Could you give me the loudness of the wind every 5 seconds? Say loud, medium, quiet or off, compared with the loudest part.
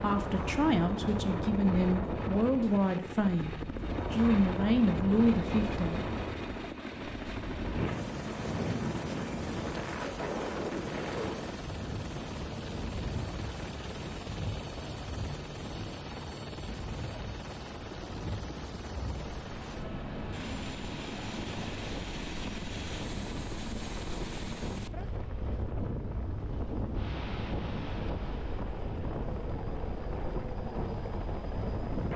loud, loud, loud, medium, medium, loud, loud.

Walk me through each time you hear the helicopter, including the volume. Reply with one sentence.
You can hear the helicopter from 0.0 to 32.1 s, at a steady volume.